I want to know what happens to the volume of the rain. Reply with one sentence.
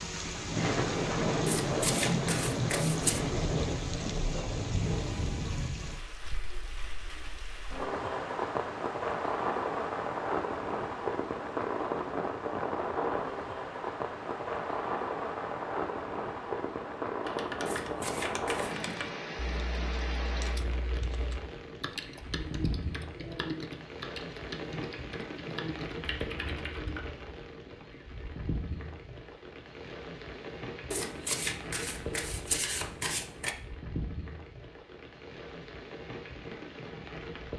The loudness of the rain goes down.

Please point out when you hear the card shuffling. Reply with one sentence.
The card shuffling can be heard from 1.4 to 3.2 s, from 17.6 to 18.9 s and from 30.9 to 33.5 s.